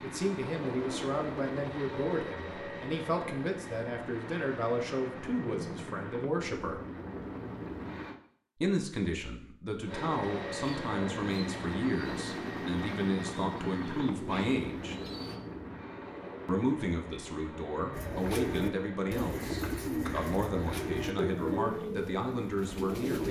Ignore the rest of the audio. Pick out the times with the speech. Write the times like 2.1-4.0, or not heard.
0.0-6.8, 8.6-14.9, 16.4-23.2.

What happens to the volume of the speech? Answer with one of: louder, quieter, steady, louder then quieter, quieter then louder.
steady.